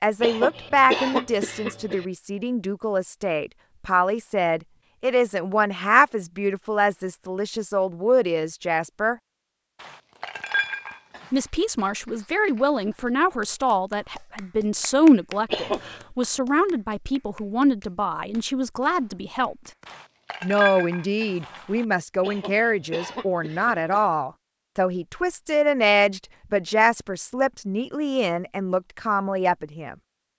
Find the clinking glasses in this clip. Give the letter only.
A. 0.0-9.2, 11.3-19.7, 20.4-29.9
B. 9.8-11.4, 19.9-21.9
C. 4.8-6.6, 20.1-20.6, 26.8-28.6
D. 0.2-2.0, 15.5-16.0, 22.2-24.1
B.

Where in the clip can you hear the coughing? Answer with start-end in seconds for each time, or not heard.
0.2-2.0, 15.5-16.0, 22.2-24.1.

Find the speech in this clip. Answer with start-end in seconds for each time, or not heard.
0.0-9.2, 11.3-19.7, 20.4-29.9.